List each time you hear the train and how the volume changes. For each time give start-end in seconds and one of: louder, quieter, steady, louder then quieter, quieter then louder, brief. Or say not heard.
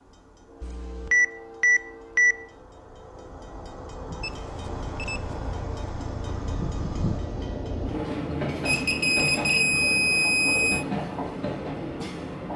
0.0-12.5 louder.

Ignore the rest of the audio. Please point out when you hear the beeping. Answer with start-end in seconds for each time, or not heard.
0.6-2.4, 4.2-5.3, 8.7-10.8.